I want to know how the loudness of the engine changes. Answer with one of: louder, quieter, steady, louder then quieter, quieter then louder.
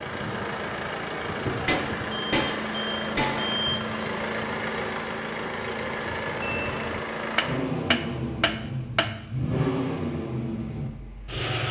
steady.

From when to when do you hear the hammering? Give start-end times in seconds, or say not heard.
1.6-3.5, 7.3-9.1.